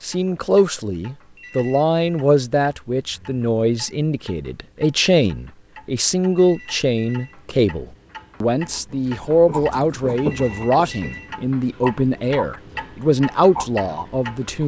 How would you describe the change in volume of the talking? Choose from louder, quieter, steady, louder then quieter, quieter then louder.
steady.